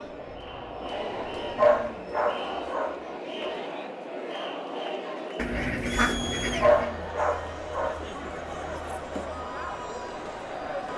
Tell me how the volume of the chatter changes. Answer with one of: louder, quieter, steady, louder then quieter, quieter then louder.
steady.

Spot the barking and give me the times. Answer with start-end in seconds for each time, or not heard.
1.6-3.5, 6.6-8.0.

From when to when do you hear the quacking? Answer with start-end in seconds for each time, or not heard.
5.3-6.9.